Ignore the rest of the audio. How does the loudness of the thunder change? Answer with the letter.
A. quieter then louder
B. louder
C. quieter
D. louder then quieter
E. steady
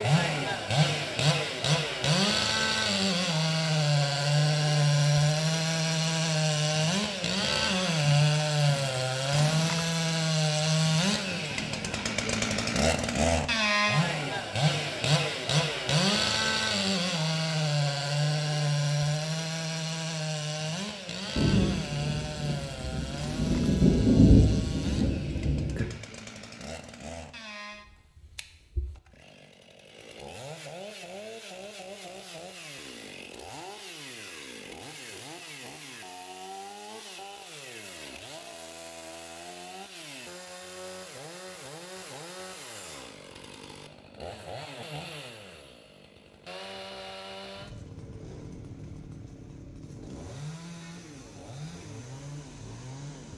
D.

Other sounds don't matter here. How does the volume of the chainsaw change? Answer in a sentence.
The volume of the chainsaw goes down.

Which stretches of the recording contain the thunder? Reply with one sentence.
You can hear the thunder from 21.4 to 25.9 s.